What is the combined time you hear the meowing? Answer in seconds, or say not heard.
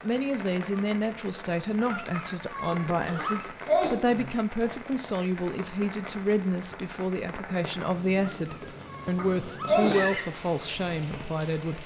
4 s.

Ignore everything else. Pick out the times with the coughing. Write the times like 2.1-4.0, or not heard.
3.1-3.9, 9.2-10.2.